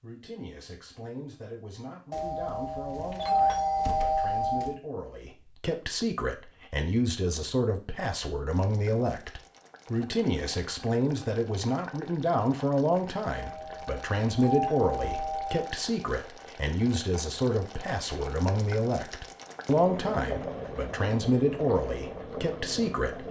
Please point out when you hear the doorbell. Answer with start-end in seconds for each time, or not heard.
2.1-4.8, 13.3-15.7.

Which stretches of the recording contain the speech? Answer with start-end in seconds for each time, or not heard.
0.0-23.2.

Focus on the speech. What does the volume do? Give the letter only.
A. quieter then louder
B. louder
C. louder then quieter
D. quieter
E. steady
B.